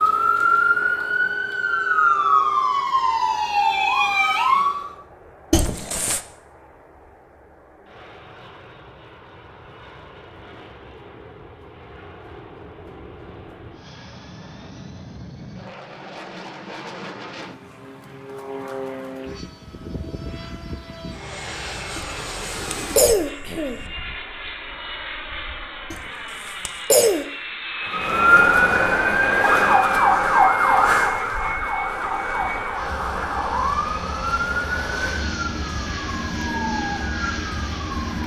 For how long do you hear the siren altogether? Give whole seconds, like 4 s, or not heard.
15 s.